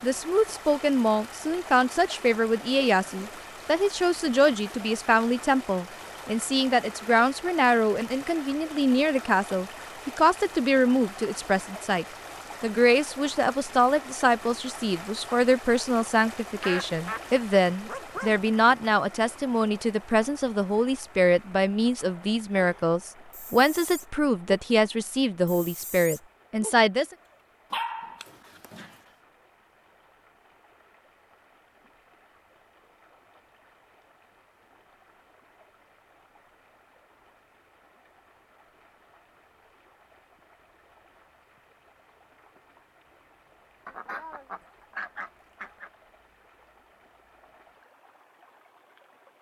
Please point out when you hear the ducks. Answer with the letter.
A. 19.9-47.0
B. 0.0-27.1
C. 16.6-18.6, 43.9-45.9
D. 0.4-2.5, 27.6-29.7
C.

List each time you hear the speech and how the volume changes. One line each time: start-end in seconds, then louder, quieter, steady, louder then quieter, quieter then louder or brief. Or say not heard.
0.0-27.1 steady.